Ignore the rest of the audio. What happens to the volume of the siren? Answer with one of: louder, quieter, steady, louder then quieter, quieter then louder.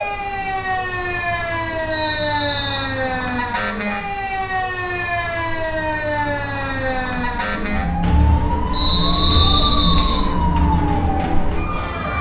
steady.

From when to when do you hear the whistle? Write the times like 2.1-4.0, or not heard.
1.9-3.0, 8.7-10.2.